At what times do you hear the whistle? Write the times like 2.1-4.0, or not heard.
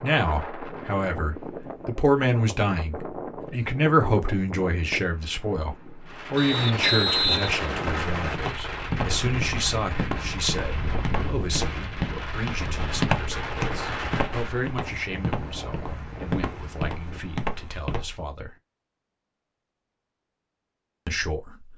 6.3-8.4.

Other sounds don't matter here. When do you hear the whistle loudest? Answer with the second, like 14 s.
7 s.